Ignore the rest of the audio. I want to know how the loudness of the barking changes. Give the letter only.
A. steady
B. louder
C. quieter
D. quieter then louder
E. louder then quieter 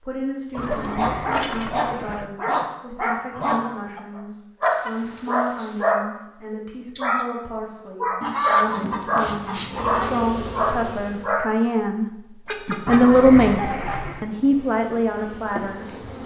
A.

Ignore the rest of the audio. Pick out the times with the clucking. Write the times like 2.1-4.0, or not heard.
0.6-1.9, 4.6-5.9, 8.2-10.2, 12.4-14.1.